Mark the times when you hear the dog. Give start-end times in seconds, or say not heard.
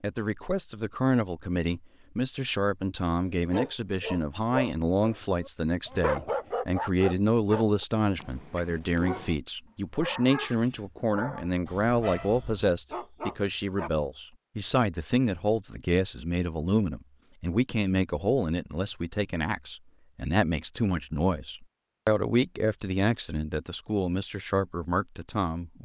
3.4-9.3, 9.9-13.9.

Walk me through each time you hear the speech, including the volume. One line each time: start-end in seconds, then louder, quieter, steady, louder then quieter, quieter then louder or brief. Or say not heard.
0.0-25.8 steady.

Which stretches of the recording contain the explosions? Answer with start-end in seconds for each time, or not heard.
not heard.